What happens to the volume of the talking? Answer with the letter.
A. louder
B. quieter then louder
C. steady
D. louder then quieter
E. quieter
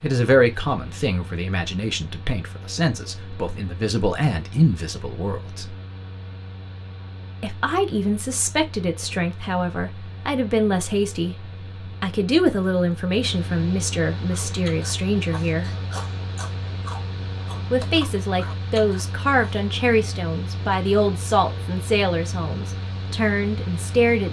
C.